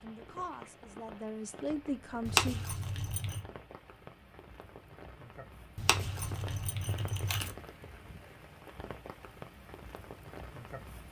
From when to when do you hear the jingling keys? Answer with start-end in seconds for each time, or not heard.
2.2-3.5, 5.8-7.5.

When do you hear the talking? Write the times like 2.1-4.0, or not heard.
0.0-2.6.